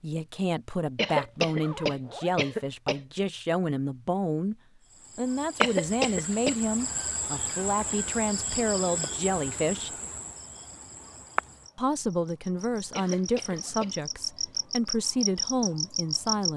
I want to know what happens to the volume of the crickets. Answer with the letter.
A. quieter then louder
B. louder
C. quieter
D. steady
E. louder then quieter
A.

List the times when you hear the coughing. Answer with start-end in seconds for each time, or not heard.
0.9-3.0, 5.6-6.5, 12.9-13.9.